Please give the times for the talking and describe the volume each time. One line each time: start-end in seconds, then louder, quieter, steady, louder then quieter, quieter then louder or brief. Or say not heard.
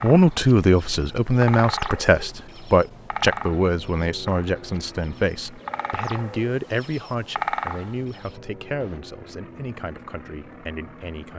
0.0-11.3 quieter.